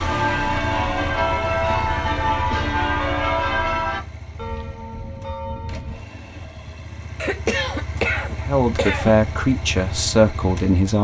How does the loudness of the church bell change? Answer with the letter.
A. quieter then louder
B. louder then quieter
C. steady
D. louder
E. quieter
E.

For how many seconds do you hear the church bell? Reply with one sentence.
You can hear the church bell for 6 seconds altogether.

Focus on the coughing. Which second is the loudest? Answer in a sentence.
The volume of the coughing peaks at 8 seconds.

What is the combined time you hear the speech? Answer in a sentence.
You can hear the speech for 3 seconds altogether.